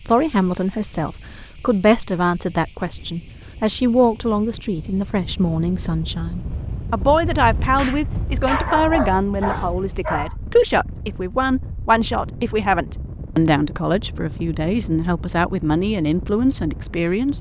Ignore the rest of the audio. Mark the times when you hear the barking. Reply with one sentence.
The barking can be heard from 8.4 to 10.3 s.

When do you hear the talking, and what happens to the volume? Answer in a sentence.
The talking can be heard from 0.1 to 17.3 s, at a steady volume.